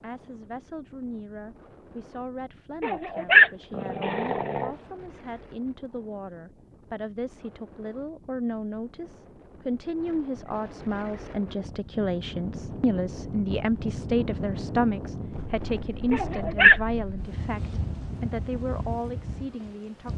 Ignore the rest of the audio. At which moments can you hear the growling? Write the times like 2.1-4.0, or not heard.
2.8-4.7, 16.1-16.8.